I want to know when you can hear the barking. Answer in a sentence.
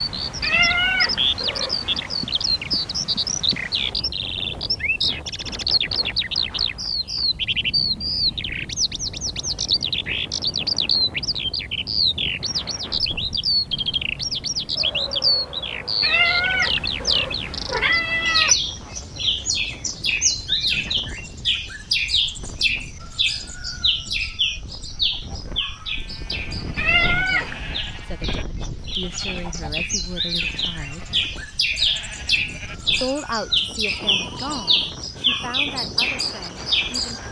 You can't hear the barking here.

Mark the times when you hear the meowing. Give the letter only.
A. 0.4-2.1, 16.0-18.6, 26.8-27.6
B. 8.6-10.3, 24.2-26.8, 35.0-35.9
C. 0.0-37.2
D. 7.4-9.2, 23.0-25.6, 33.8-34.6
A.